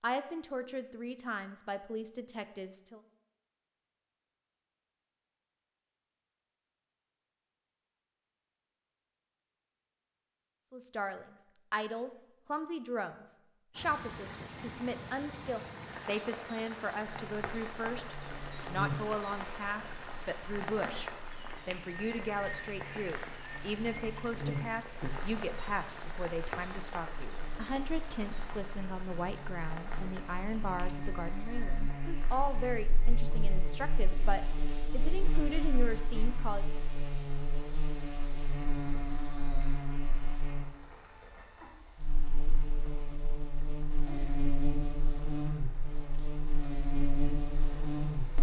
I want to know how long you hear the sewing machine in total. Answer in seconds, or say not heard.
not heard.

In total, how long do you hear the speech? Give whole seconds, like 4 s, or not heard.
29 s.